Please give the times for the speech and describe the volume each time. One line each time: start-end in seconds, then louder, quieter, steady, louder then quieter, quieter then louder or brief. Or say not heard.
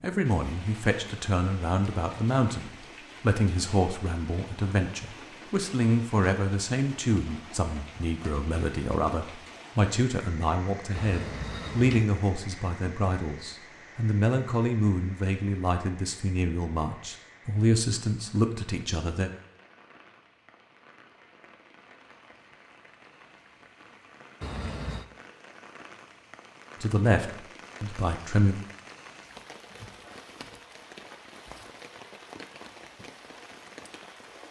0.0-19.3 steady
26.8-28.6 brief.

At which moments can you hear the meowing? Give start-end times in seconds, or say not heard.
10.9-12.1, 24.4-25.1.